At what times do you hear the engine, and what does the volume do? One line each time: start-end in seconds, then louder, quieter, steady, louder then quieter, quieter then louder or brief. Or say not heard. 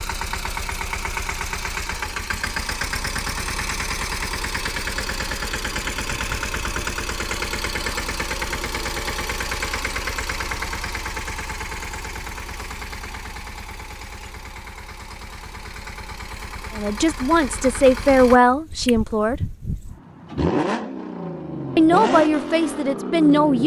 0.0-23.6 quieter then louder.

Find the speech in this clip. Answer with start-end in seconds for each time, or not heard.
16.8-19.4, 21.8-23.6.